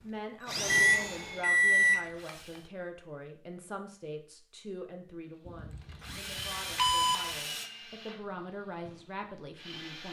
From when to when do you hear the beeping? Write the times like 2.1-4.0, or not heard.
0.9-2.0, 5.5-7.4.